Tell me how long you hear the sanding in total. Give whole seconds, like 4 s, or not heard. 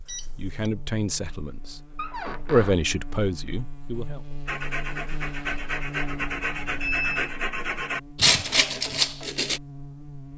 5 s.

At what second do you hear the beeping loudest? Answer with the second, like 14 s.
7 s.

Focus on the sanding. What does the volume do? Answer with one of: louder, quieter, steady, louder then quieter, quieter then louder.
louder.